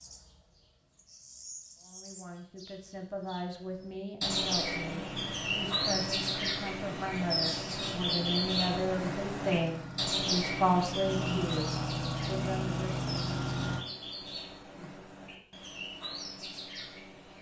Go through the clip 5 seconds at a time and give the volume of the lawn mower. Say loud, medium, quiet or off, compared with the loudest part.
off, medium, loud, off.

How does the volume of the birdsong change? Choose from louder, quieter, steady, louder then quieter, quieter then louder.
louder then quieter.